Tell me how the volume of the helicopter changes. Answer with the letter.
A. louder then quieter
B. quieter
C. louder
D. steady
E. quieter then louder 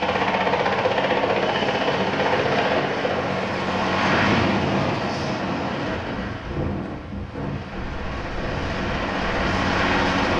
E.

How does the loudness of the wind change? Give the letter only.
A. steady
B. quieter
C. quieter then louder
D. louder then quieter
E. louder
B.